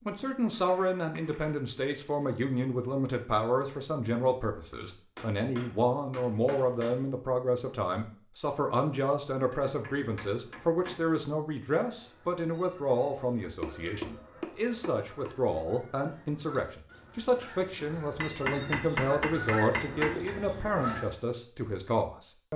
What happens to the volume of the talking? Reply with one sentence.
The volume of the talking stays about the same.